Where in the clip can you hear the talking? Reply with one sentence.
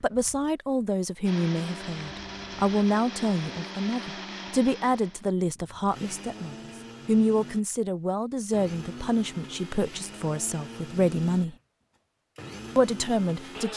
The talking can be heard from 0.0 to 11.6 s and from 12.8 to 13.7 s.